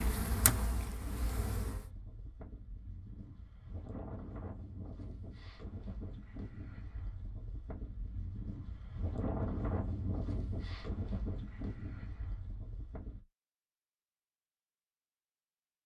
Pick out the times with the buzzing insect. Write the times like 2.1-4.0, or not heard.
0.0-1.9.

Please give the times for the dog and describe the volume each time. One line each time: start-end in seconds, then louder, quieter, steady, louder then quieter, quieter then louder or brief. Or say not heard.
not heard.